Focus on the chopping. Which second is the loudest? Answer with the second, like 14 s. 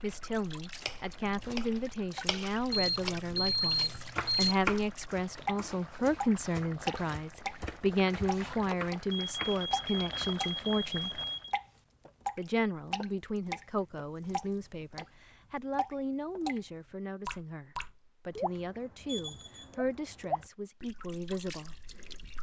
5 s.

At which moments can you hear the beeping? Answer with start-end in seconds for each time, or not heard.
2.7-4.5, 9.1-11.6, 19.1-19.8.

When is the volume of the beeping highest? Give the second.
4 s.